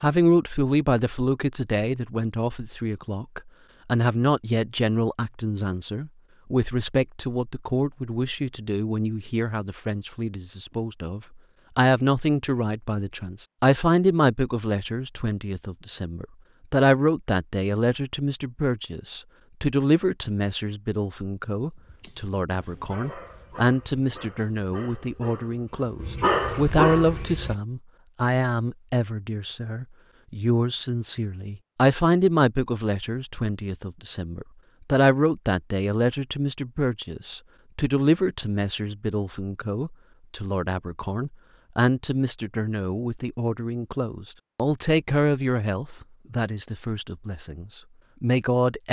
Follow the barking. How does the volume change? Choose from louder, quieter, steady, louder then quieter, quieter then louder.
louder.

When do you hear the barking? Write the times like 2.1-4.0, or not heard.
21.8-27.6.